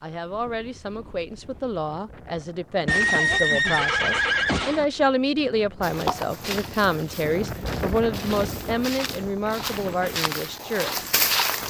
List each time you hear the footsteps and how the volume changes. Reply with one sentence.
The footsteps can be heard from 5.8 to 11.6 s, getting quieter then louder.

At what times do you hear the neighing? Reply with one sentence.
The neighing can be heard from 2.9 to 4.8 s.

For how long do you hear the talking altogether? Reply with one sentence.
You can hear the talking for 11 seconds altogether.